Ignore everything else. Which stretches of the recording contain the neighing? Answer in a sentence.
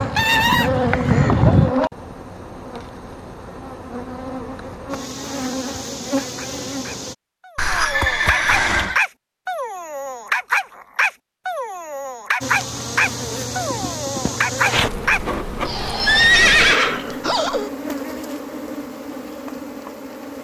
You can hear the neighing from 0.1 to 1.4 s, from 7.5 to 9.0 s and from 16.1 to 17.7 s.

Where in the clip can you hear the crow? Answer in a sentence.
You can hear the crow from 0.0 to 1.7 s.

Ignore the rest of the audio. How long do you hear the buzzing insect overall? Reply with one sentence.
The buzzing insect can be heard for 15 seconds in total.